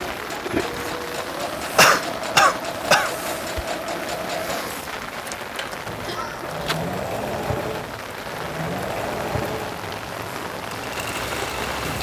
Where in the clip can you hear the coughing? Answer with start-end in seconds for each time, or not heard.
1.6-3.1, 6.0-6.6.